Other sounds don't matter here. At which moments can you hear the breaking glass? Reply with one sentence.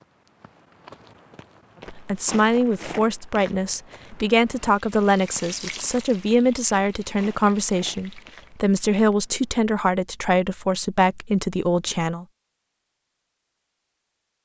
The breaking glass can't be heard in this clip.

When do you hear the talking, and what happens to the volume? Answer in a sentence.
You can hear the talking from 1.9 to 12.2 s, at a steady volume.